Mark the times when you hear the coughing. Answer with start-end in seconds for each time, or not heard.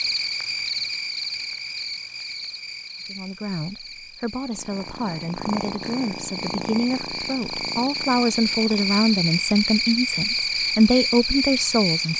not heard.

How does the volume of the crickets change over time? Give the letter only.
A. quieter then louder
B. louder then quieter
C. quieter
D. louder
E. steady
A.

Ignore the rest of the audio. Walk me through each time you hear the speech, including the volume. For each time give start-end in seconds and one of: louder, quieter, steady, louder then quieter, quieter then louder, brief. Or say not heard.
3.0-12.1 louder.